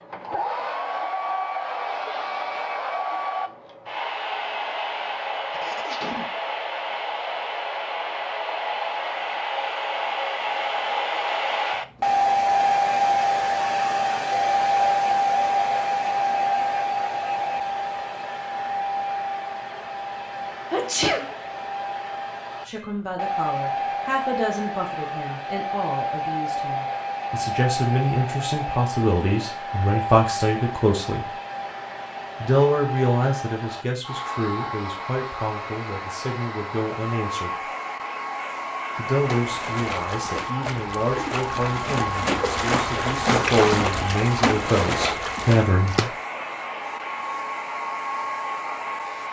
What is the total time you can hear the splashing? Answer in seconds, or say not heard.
7 s.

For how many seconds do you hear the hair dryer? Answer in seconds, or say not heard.
49 s.